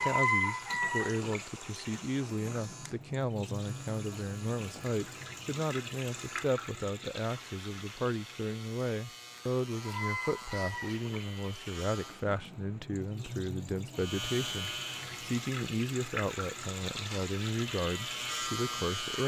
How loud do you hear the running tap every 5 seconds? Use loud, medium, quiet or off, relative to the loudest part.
loud, medium, medium, medium.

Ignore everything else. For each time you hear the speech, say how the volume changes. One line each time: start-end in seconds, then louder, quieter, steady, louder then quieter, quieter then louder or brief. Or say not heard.
0.0-19.2 steady.